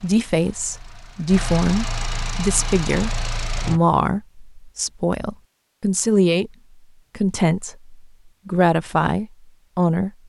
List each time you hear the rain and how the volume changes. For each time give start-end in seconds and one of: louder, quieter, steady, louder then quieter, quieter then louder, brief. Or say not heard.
not heard.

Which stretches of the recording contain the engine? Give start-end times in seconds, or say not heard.
0.0-3.8.